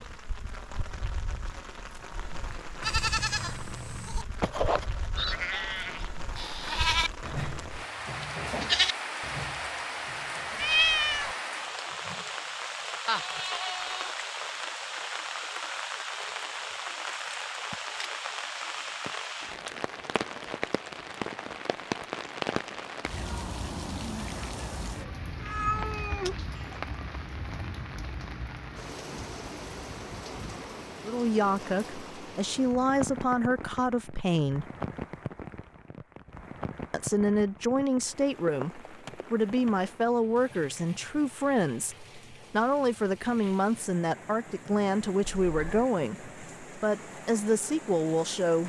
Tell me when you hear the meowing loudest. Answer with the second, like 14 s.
11 s.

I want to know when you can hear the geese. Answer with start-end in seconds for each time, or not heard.
not heard.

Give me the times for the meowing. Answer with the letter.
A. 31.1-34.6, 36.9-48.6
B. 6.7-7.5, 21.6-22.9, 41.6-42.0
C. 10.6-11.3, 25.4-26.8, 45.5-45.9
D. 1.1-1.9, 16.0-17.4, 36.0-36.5
C.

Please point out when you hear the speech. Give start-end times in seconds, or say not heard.
31.1-34.6, 36.9-48.6.